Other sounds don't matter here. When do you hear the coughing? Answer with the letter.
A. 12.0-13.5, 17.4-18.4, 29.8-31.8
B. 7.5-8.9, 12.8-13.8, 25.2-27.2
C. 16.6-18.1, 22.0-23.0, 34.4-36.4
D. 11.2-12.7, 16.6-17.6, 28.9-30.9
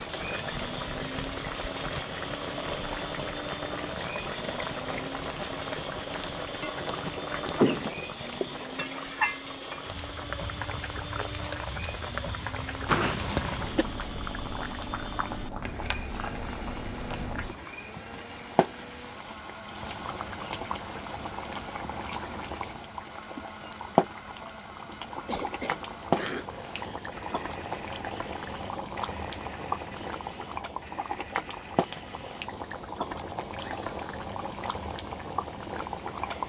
B.